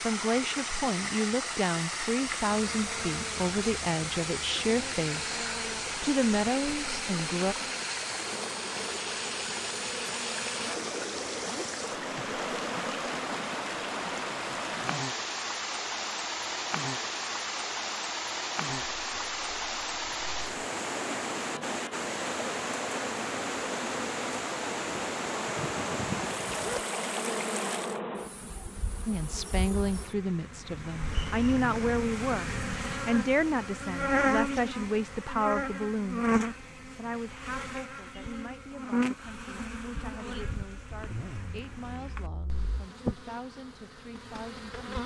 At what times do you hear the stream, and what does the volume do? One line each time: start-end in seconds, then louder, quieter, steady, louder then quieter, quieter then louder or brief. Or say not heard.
0.0-28.0 steady.